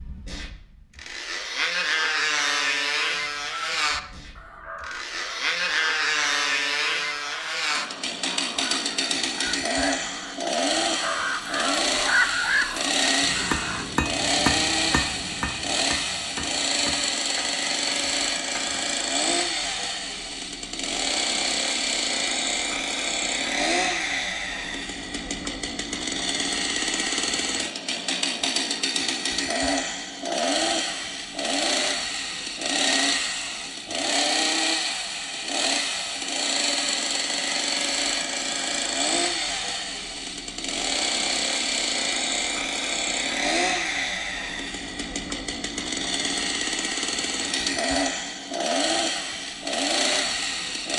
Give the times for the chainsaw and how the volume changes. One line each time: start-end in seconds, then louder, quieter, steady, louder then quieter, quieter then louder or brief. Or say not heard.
0.0-50.9 steady.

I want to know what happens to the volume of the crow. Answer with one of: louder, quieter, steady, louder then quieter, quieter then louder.
louder.